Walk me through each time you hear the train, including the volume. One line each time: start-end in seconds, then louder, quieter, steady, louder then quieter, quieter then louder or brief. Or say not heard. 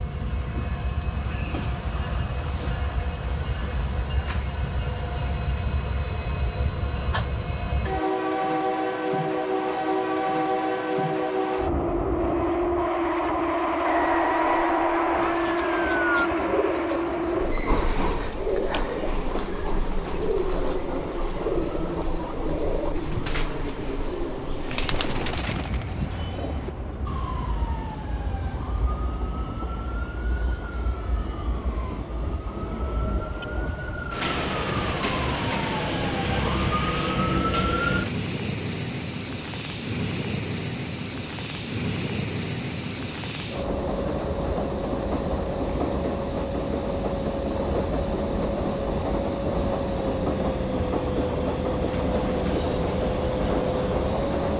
0.0-54.5 quieter then louder.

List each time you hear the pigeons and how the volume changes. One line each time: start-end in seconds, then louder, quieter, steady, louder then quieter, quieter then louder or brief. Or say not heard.
15.2-26.8 steady.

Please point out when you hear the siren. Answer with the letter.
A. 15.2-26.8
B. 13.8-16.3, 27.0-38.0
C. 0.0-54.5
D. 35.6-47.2
B.